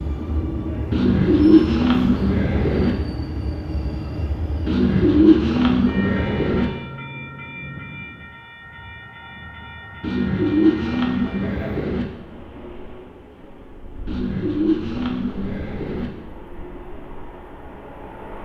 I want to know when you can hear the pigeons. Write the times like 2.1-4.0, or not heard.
0.9-3.0, 4.7-6.7, 10.0-12.1, 14.1-16.1.